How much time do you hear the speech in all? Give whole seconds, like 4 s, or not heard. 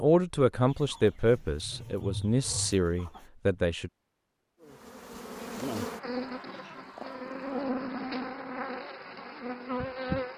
4 s.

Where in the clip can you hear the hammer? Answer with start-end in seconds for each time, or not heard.
not heard.